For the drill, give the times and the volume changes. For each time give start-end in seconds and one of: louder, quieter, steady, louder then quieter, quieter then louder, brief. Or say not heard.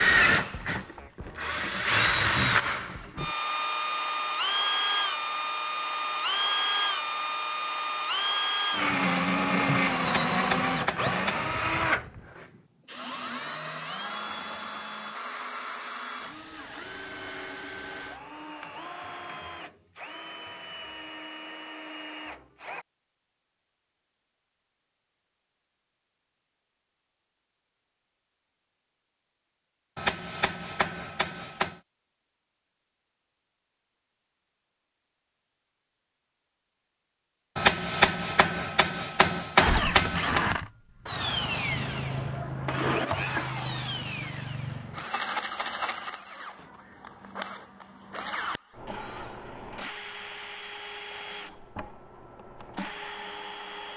0.0-22.9 quieter
39.5-53.9 quieter.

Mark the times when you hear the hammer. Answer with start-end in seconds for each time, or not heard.
10.0-11.5, 29.9-31.8, 37.5-40.4.